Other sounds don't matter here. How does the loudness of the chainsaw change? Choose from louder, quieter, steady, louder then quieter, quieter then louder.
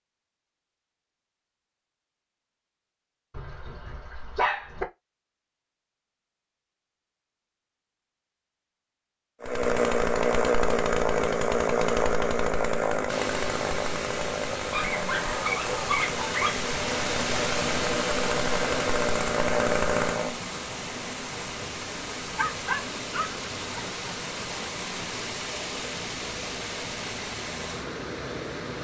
quieter then louder.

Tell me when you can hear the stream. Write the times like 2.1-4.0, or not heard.
13.1-28.8.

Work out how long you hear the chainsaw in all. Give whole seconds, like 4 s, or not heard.
11 s.